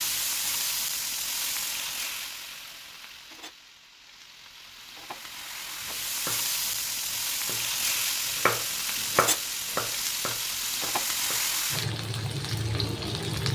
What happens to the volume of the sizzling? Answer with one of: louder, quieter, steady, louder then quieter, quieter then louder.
quieter then louder.